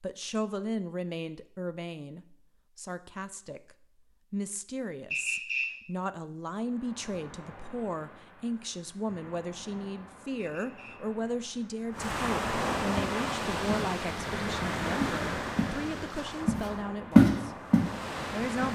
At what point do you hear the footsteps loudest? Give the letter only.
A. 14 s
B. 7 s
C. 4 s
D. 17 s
D.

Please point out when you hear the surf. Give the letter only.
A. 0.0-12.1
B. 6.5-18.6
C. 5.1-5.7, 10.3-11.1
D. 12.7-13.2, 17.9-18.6
B.